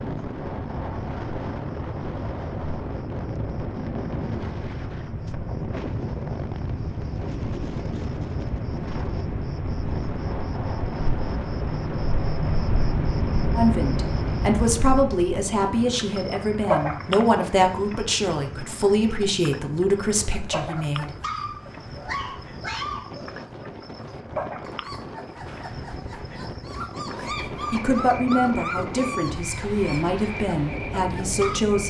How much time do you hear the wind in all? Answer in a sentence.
The wind can be heard for 32 seconds in total.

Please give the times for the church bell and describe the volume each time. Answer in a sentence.
The church bell can't be heard in this clip.